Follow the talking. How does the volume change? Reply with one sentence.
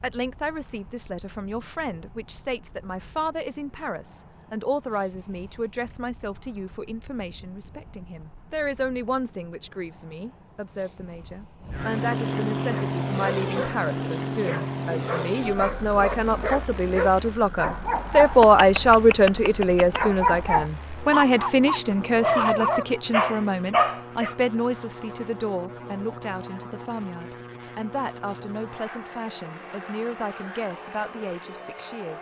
The loudness of the talking goes up, then down.